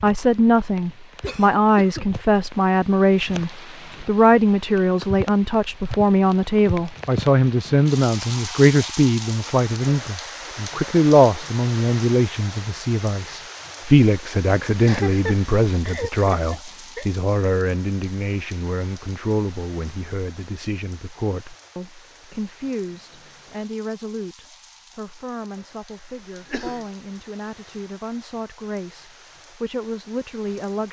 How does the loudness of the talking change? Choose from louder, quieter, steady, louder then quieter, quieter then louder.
quieter.